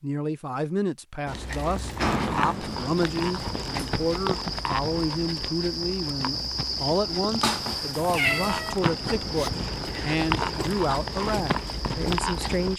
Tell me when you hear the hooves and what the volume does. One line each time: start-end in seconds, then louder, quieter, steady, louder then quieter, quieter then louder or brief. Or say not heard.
1.2-12.7 quieter then louder.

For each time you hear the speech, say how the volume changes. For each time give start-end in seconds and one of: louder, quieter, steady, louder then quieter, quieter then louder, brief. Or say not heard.
0.0-12.7 steady.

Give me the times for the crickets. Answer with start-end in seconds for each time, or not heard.
2.6-12.7.